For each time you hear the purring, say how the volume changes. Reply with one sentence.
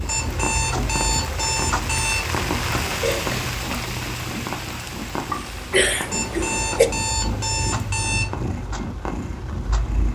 You can hear the purring from 0.0 to 10.1 s, at a steady volume.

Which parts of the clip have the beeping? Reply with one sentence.
You can hear the beeping from 0.1 to 2.2 s and from 6.1 to 8.2 s.